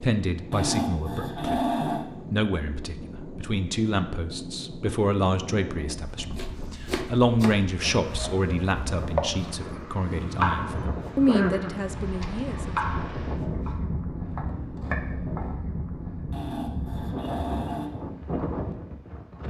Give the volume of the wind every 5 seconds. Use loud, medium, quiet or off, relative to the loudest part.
medium, medium, loud, loud.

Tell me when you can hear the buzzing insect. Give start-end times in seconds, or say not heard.
not heard.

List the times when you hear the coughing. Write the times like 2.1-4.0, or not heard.
10.8-11.9.